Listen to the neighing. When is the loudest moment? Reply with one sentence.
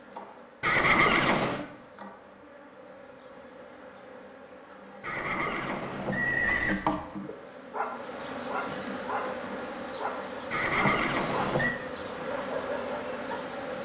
The loudest moment of the neighing is at 1 second.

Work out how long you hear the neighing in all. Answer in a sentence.
You can hear the neighing for 4 seconds altogether.